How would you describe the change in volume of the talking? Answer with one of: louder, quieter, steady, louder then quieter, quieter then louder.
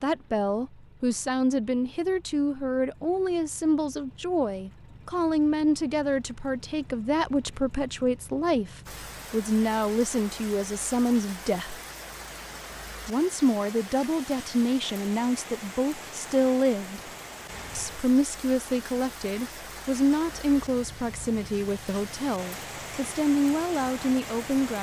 steady.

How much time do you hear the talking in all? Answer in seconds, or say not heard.
23 s.